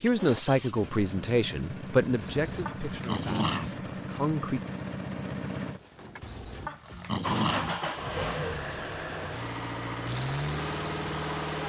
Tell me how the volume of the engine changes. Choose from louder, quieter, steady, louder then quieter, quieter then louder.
louder.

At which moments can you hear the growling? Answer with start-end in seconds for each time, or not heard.
2.2-3.8, 6.2-7.8.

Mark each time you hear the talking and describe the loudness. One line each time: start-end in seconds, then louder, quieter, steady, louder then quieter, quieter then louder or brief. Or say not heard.
0.0-4.6 quieter.